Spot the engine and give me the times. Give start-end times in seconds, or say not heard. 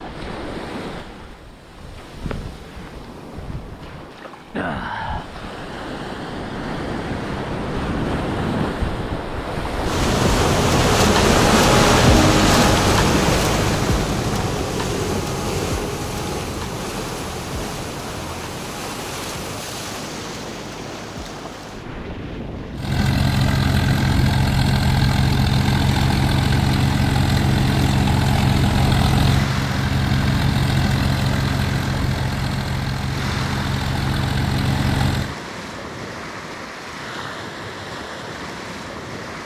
22.8-35.4.